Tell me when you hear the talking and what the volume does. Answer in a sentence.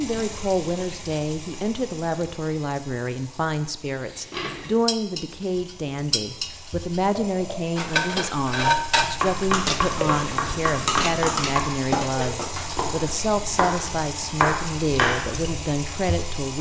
You can hear the talking from 0.0 to 16.5 s, at a steady volume.